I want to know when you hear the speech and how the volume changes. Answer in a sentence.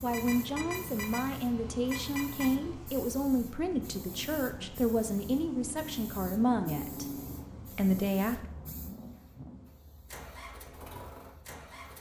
The speech can be heard from 0.0 to 7.0 s, at a steady volume; and briefly from 7.8 to 8.4 s.